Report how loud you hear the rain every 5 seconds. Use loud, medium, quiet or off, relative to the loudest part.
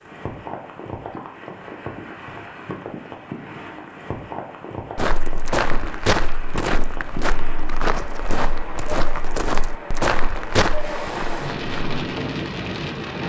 medium, medium, loud.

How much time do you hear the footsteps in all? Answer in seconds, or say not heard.
7 s.